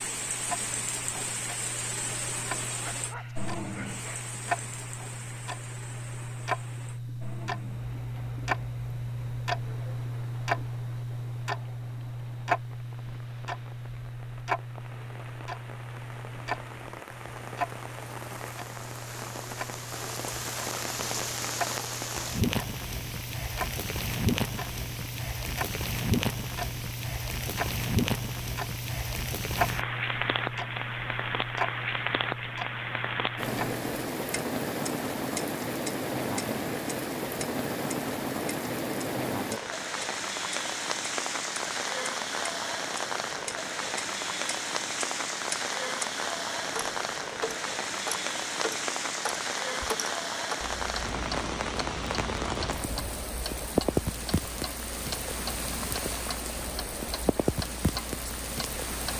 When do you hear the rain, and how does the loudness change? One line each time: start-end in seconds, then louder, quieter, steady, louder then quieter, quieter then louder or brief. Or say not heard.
0.0-59.1 louder.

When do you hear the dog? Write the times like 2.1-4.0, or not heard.
2.8-4.3.